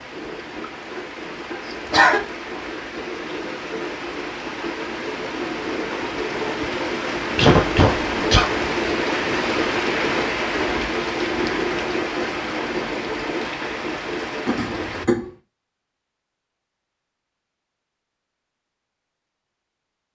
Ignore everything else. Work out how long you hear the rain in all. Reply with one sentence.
The rain can be heard for 15 seconds in total.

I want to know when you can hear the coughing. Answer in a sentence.
You can hear the coughing from 1.5 to 2.2 s, from 7.3 to 8.4 s and from 14.4 to 15.3 s.